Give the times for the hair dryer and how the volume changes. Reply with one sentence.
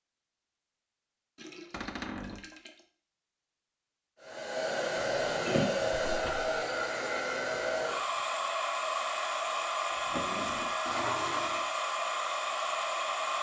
You can hear the hair dryer from 4.2 to 13.3 s, at a steady volume.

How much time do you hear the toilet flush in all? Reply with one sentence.
You can hear the toilet flush for 3 seconds altogether.